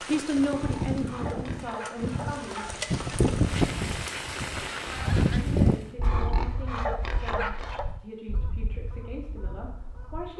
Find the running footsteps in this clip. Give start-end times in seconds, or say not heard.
not heard.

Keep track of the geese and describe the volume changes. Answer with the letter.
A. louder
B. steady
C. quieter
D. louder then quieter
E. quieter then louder
D.